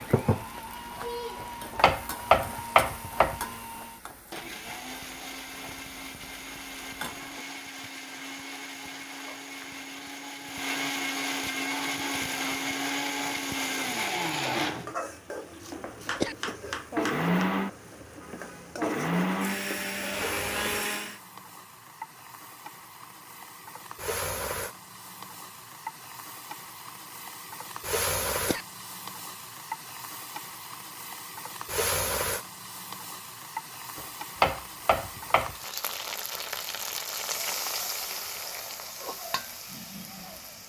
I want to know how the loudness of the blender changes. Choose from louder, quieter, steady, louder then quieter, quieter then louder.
louder.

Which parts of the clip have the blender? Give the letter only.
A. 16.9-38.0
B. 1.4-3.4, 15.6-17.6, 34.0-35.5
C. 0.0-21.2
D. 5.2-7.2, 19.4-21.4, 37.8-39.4
C.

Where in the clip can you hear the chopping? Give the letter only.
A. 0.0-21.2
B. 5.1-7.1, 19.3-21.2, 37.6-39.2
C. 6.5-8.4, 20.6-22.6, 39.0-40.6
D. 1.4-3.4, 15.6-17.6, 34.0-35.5
D.